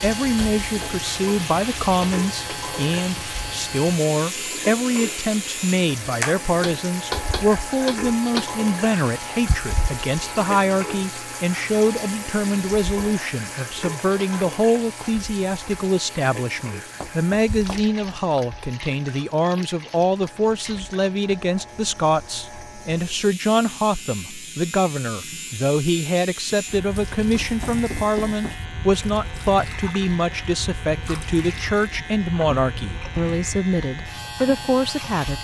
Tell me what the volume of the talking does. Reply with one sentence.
The volume of the talking stays about the same.